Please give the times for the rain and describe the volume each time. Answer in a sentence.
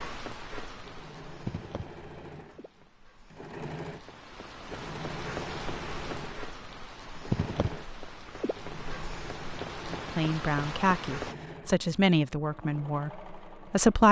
You can hear the rain from 0.0 to 11.3 s, getting quieter then louder.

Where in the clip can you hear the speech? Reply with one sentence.
The speech can be heard from 9.8 to 14.0 s.